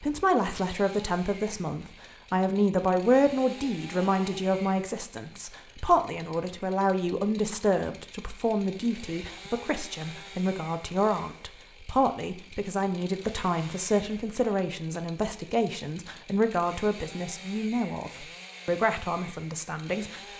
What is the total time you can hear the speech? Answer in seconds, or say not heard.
20 s.